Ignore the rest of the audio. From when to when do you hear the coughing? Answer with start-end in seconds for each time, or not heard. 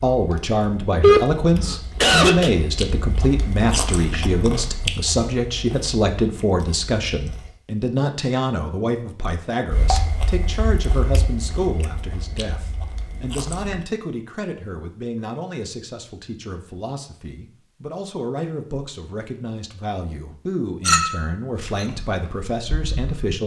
1.0-2.5.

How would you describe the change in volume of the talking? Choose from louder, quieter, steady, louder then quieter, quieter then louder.
quieter.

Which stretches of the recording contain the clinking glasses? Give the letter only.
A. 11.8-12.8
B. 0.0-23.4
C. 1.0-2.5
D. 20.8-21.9
D.